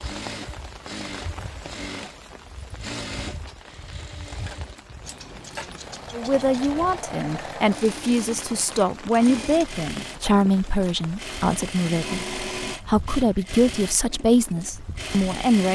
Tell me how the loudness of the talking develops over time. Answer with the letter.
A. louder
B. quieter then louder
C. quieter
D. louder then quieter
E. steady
E.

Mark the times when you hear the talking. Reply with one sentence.
You can hear the talking from 6.1 to 15.7 s.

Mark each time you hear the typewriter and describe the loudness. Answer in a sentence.
The typewriter can't be heard in this clip.